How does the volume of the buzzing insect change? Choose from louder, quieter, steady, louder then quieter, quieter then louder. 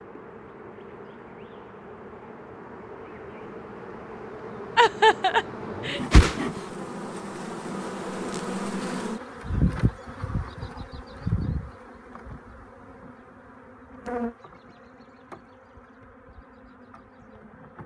louder then quieter.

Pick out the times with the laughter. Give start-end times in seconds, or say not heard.
4.8-6.0.